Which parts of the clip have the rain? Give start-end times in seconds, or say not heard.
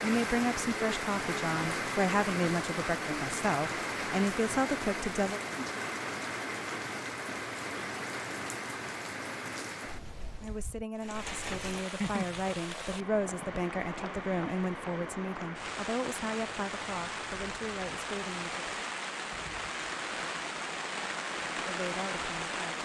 0.0-22.8.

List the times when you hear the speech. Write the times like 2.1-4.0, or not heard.
0.0-5.4, 10.4-18.6, 21.6-22.8.